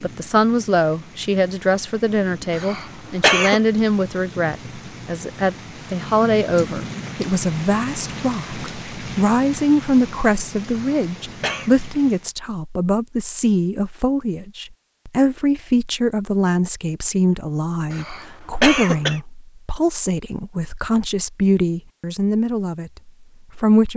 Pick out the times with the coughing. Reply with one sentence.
You can hear the coughing from 2.5 to 3.6 s, from 10.7 to 11.7 s and from 17.9 to 19.2 s.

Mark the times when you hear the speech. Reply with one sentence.
You can hear the speech from 0.0 to 23.9 s.